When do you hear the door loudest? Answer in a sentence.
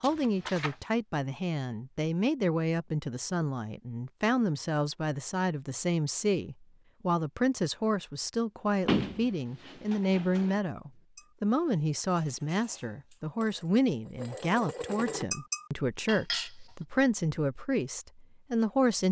The loudest moment of the door is at 9 seconds.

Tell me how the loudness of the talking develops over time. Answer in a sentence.
The volume of the talking stays about the same.